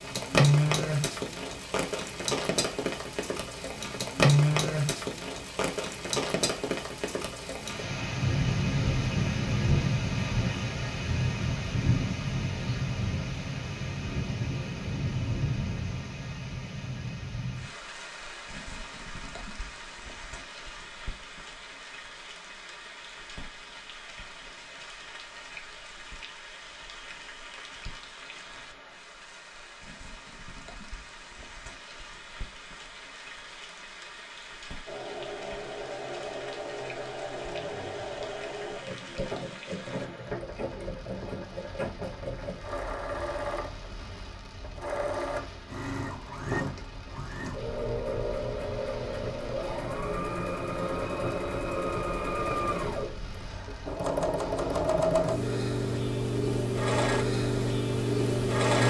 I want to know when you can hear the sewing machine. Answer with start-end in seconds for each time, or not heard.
34.9-58.8.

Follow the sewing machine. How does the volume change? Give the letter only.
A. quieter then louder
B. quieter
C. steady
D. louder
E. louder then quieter
D.